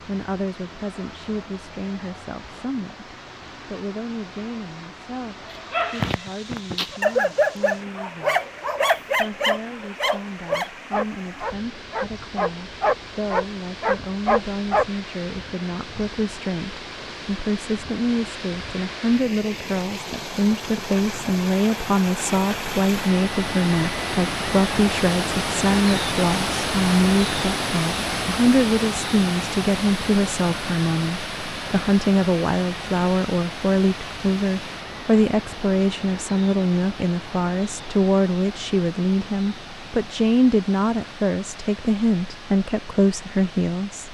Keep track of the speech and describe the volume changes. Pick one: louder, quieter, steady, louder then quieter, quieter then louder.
louder.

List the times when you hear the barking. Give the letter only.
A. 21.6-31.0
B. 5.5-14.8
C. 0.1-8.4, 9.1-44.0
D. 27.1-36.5
B.